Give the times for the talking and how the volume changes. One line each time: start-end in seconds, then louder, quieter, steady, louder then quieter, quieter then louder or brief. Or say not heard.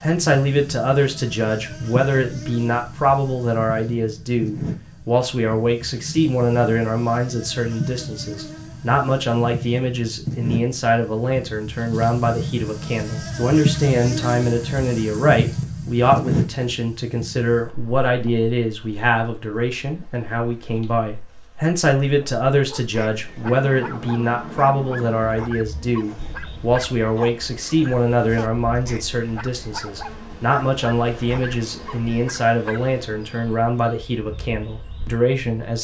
0.0-35.8 steady.